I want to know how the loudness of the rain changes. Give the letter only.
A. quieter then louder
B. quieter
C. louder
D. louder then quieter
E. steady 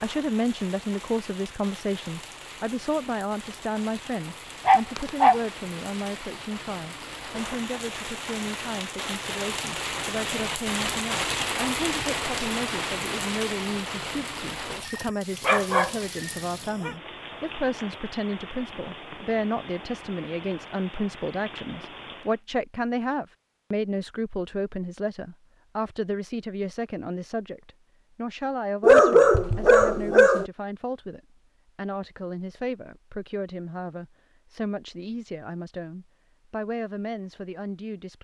D.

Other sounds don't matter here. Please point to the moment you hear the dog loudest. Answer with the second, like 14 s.
29 s.